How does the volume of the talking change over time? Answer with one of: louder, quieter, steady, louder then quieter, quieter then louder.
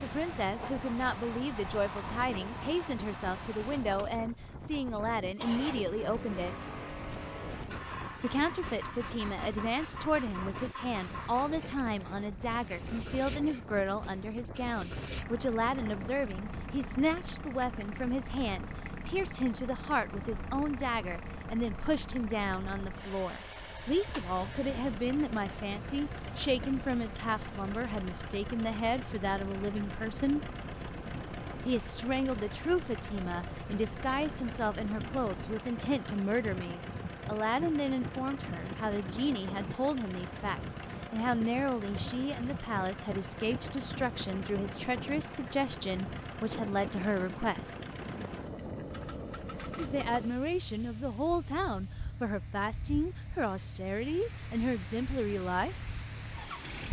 steady.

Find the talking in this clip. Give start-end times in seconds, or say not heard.
0.0-6.5, 8.2-30.5, 31.6-47.8, 49.8-55.8.